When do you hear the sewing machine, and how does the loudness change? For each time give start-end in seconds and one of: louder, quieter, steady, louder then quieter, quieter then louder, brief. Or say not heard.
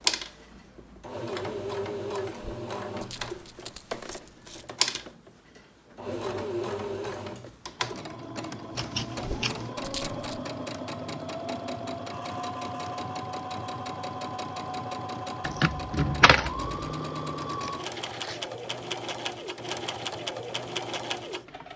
0.0-21.7 steady.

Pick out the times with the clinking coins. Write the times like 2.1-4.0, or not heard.
2.4-4.7, 9.2-10.4, 15.4-16.7.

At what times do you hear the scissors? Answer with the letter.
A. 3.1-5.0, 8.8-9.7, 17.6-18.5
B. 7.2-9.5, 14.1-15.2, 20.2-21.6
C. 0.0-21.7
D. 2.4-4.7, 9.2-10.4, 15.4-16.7
A.